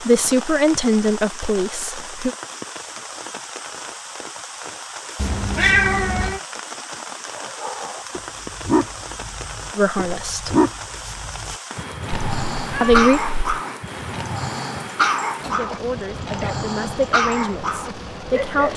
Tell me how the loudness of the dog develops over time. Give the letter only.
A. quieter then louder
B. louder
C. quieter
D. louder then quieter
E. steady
E.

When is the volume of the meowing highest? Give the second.
6 s.